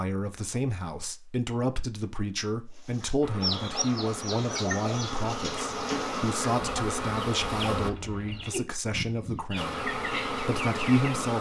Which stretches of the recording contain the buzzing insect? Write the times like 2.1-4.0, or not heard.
3.2-7.9, 9.6-11.3.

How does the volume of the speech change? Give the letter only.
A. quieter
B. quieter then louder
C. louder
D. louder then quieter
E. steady
E.